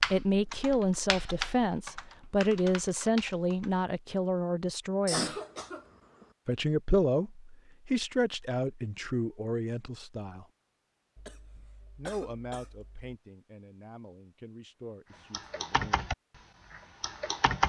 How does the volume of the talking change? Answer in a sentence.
The volume of the talking goes down.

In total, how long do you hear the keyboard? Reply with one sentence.
The keyboard can be heard for 6 seconds in total.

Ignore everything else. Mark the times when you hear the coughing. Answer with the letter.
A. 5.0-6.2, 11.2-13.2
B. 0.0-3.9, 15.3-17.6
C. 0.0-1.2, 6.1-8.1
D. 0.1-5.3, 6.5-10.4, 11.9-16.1
A.